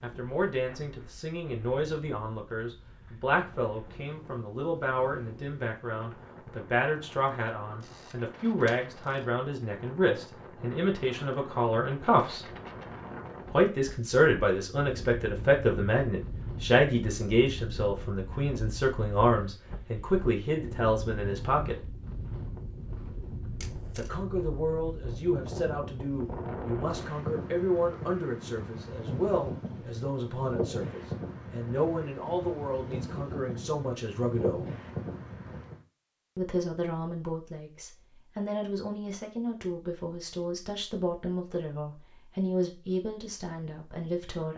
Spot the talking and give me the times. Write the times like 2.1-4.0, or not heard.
0.0-12.4, 13.5-21.8, 23.9-34.6, 36.4-44.5.